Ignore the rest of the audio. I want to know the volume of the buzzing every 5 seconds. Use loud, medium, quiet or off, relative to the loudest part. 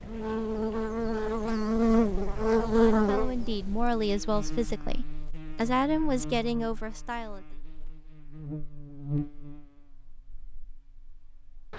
loud, quiet, quiet.